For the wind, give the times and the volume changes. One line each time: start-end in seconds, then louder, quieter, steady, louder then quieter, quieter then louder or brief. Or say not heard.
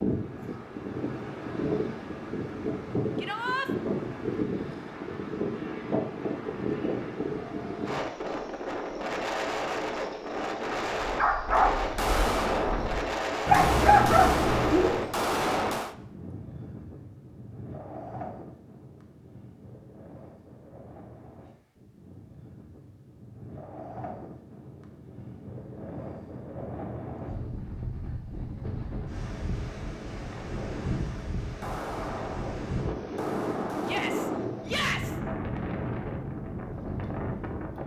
0.0-37.8 quieter then louder.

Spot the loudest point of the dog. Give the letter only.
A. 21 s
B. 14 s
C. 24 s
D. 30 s
B.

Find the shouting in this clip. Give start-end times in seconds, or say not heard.
3.2-3.6, 33.8-35.1.